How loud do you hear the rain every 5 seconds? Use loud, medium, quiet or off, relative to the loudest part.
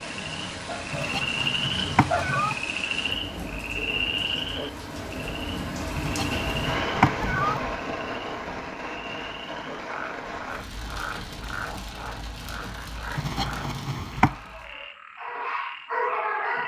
medium, loud, medium, off.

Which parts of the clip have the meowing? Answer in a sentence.
You can hear the meowing from 0.9 to 2.5 s, from 6.0 to 7.6 s and from 13.2 to 14.3 s.